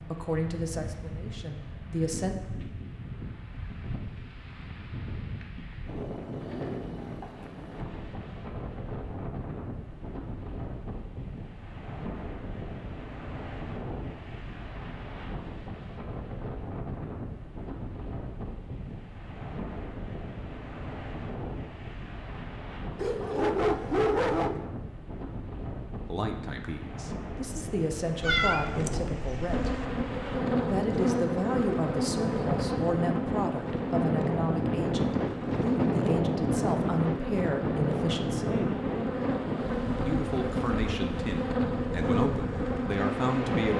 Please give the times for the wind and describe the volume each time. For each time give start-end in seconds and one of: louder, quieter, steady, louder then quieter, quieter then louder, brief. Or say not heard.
0.0-43.7 louder.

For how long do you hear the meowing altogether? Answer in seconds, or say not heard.
2 s.